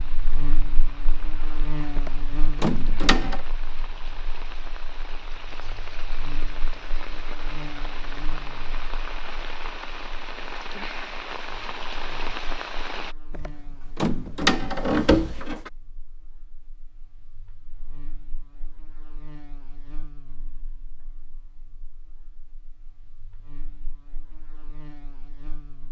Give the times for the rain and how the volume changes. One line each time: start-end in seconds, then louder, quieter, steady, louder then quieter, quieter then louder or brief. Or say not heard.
0.0-13.2 louder.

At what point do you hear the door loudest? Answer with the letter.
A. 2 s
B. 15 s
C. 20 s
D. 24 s
B.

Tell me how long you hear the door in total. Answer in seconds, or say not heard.
4 s.